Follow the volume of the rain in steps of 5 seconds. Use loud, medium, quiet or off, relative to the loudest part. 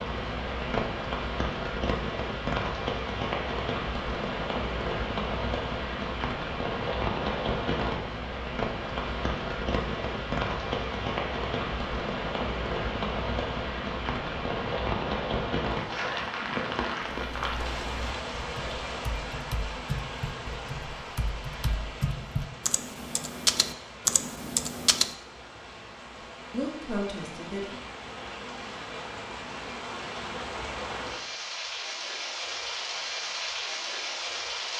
loud, loud, loud, loud, medium, medium, loud.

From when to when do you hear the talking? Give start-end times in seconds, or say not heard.
26.5-27.8.